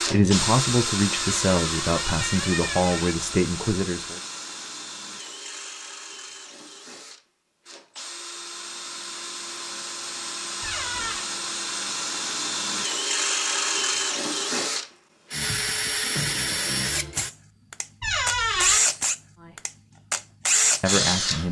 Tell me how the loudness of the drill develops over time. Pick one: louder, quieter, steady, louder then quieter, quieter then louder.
quieter then louder.